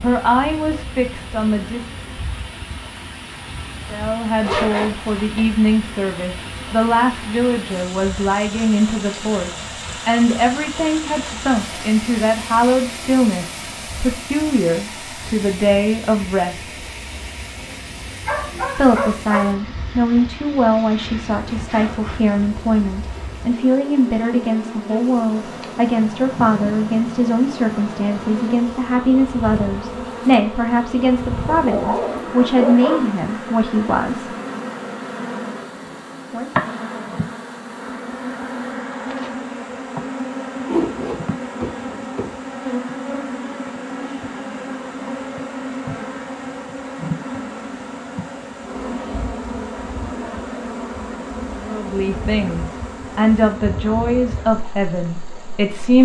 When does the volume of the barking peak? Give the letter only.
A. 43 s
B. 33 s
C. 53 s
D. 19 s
B.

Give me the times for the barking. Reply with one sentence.
You can hear the barking from 18.2 to 19.6 s and from 31.4 to 33.1 s.